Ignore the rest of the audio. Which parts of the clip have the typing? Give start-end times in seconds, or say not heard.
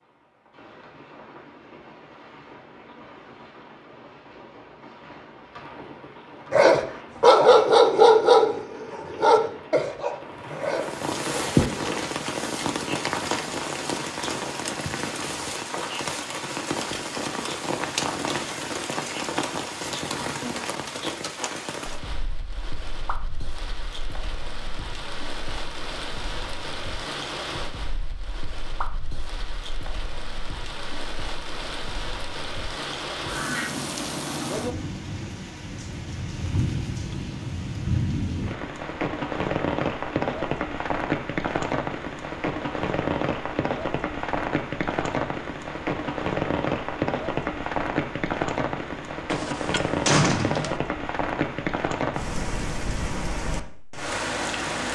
not heard.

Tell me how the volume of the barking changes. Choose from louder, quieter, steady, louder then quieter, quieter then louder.
quieter.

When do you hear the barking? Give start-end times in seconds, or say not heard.
6.5-11.8.